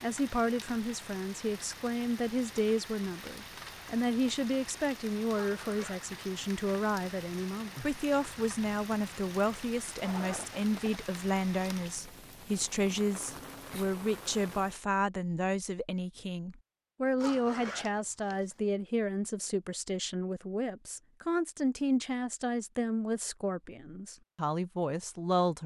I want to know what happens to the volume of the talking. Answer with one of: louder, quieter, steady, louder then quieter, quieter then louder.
steady.